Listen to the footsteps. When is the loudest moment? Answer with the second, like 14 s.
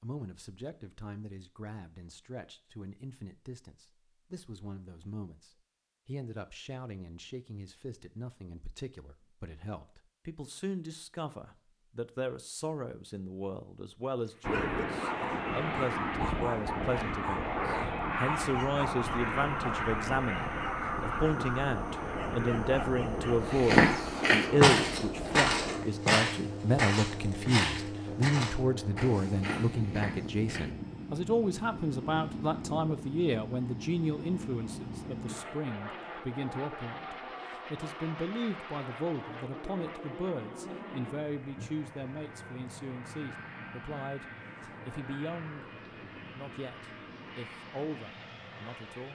24 s.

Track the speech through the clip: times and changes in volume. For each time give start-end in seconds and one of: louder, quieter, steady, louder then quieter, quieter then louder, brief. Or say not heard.
0.0-45.7 louder then quieter
46.4-49.1 brief.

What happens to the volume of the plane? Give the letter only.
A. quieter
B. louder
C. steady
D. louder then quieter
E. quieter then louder
A.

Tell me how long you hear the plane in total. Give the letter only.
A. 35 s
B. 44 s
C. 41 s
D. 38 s
A.